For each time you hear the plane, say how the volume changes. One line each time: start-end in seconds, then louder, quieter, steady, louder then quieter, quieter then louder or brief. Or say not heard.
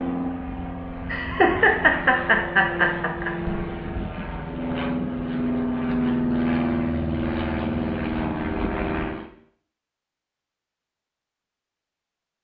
0.0-9.3 louder.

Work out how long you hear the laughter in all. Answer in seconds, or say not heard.
2 s.